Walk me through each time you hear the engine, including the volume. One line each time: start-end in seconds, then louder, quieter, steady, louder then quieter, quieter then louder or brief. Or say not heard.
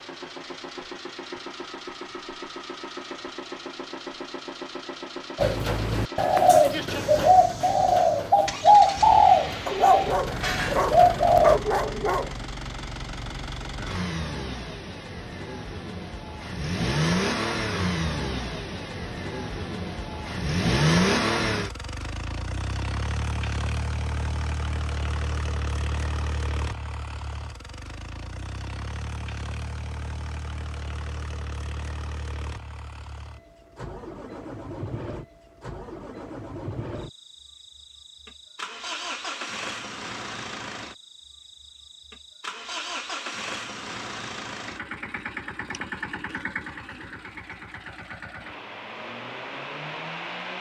0.0-50.5 louder then quieter.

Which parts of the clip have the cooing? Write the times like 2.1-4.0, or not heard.
5.3-11.6.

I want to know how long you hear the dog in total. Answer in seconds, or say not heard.
3 s.